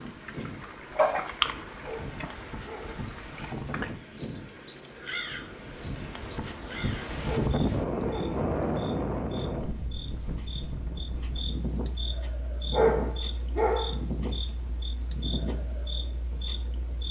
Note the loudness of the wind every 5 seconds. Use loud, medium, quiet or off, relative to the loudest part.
medium, loud, medium, medium.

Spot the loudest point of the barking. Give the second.
13 s.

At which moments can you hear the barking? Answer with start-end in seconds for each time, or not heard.
1.8-3.0, 7.2-8.4, 12.7-13.9.